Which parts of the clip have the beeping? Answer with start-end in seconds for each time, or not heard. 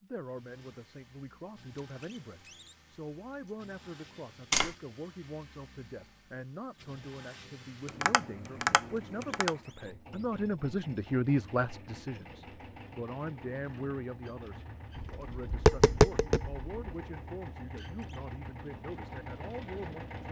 not heard.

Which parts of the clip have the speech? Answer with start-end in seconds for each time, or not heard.
0.0-20.2.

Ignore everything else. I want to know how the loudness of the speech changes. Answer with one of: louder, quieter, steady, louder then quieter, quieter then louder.
louder then quieter.